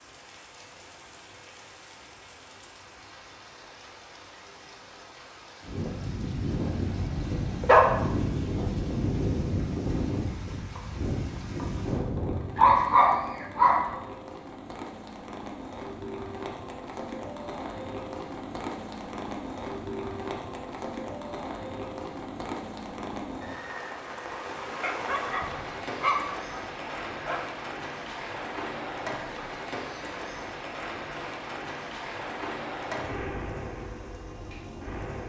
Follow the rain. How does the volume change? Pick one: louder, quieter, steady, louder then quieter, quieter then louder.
louder.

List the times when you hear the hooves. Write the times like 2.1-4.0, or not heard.
5.6-12.8.